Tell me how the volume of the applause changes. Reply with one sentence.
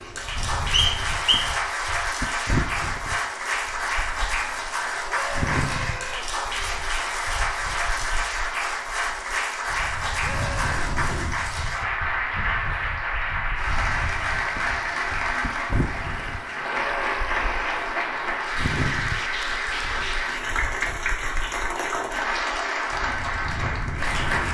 The volume of the applause stays about the same.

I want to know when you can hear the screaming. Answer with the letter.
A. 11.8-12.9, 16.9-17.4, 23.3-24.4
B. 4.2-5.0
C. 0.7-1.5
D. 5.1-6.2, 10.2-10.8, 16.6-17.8
D.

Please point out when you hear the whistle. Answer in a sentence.
The whistle can be heard from 0.7 to 1.5 s.